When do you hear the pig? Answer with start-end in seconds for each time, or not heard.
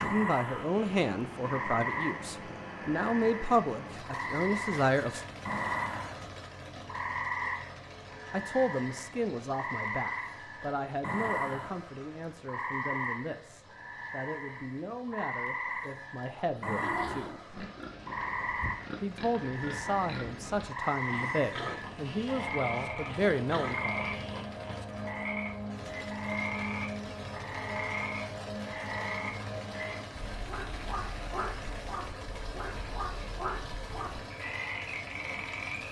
16.6-24.9.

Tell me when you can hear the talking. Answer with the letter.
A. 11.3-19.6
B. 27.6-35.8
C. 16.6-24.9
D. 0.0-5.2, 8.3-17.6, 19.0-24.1
D.